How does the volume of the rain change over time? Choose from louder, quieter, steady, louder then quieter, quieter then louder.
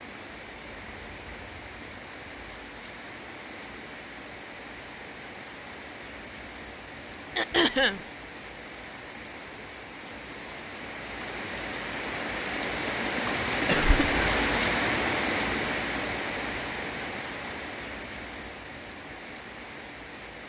louder then quieter.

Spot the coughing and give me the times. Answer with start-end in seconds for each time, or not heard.
7.3-8.0, 13.7-14.3.